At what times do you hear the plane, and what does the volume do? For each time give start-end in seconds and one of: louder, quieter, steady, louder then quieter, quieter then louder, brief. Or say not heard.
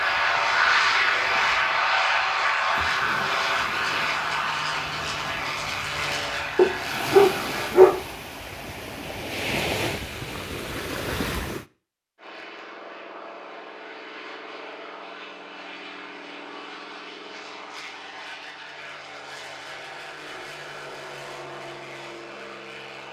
0.0-7.8 quieter
12.2-23.0 steady.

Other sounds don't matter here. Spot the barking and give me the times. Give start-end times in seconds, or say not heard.
6.5-8.0.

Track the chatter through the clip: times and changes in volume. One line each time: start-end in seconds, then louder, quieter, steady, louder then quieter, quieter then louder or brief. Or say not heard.
not heard.